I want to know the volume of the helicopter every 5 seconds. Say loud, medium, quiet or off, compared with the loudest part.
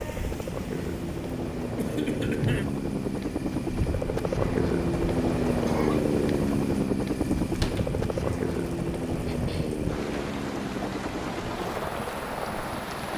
loud, loud, medium.